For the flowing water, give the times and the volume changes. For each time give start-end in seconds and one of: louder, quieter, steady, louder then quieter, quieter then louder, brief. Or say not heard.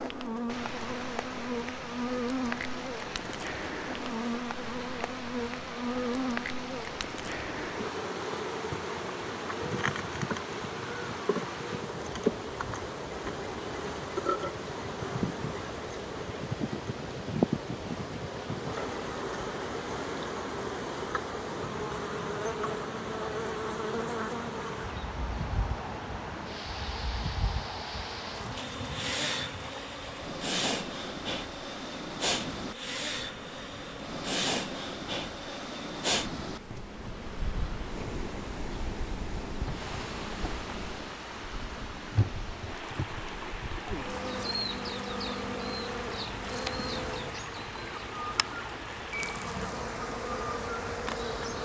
0.2-51.5 steady.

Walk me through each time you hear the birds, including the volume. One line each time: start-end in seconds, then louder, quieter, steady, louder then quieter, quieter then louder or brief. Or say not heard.
not heard.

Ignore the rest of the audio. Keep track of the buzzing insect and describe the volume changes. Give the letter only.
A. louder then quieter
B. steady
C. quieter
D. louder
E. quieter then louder
B.